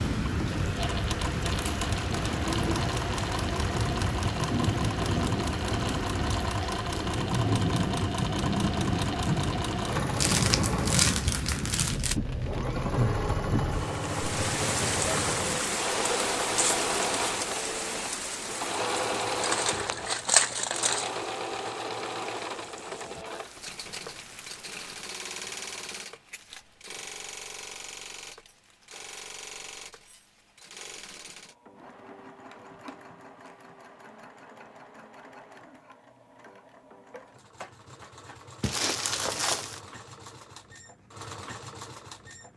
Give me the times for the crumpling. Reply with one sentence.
You can hear the crumpling from 10.2 to 12.2 s, from 19.4 to 21.1 s and from 38.6 to 39.8 s.